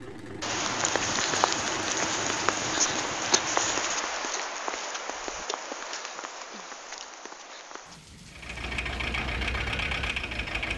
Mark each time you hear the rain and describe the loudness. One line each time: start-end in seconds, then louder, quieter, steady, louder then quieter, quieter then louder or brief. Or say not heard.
0.2-10.7 quieter.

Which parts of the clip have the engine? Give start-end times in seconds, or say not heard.
0.0-4.2, 8.2-10.7.